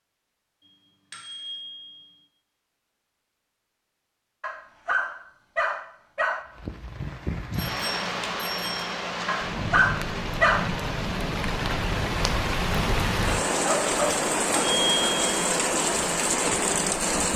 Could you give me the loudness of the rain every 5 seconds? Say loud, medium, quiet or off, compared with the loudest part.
off, medium, loud, loud.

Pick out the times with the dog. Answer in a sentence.
You can hear the dog from 4.4 to 6.5 s and from 9.2 to 10.8 s.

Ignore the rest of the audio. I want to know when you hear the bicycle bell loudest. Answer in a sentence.
The loudest moment of the bicycle bell is at 15 seconds.